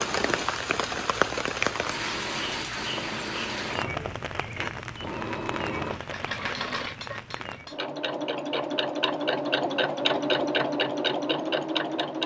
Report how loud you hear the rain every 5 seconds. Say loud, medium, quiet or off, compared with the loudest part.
loud, medium, off.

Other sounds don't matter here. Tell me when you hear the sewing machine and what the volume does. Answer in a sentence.
You can hear the sewing machine from 0.0 to 12.2 s, getting louder.